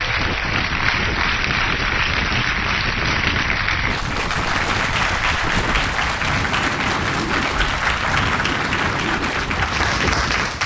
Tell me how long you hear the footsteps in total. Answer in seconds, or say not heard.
not heard.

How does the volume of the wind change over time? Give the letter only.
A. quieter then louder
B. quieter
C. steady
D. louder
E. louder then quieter
C.